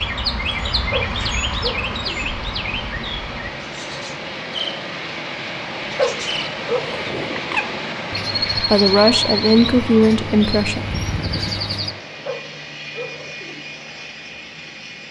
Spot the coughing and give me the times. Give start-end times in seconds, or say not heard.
not heard.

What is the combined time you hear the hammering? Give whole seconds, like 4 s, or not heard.
not heard.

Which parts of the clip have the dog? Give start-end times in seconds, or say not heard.
0.9-2.3, 6.0-7.3, 12.2-13.6.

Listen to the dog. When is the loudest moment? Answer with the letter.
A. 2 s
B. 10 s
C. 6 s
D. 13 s
C.